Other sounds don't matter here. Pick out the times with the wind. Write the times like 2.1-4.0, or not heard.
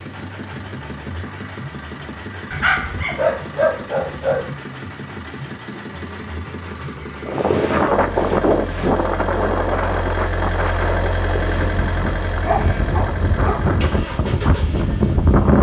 7.2-15.5.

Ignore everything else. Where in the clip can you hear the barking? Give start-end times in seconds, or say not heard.
2.5-4.5, 12.2-13.7.